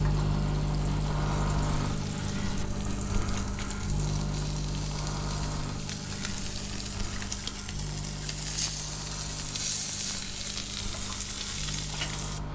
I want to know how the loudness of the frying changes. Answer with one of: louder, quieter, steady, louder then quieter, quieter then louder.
louder.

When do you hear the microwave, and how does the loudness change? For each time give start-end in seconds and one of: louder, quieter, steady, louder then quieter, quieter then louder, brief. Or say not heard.
0.0-12.5 quieter.